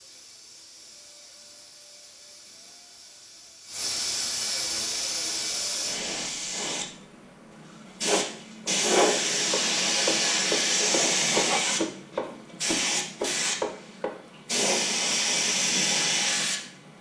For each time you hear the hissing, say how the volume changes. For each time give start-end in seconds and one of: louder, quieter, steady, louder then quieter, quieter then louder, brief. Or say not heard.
0.0-16.9 louder.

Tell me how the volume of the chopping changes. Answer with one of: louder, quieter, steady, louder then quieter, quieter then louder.
louder.